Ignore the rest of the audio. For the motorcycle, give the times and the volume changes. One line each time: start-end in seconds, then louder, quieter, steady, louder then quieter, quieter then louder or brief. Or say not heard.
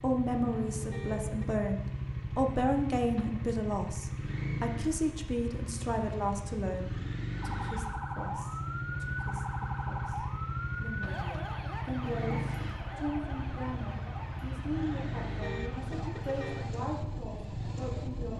0.0-18.3 steady.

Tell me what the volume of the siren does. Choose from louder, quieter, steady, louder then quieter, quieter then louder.
quieter.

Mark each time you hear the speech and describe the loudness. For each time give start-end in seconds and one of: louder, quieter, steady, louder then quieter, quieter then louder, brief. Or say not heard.
0.0-18.3 quieter then louder.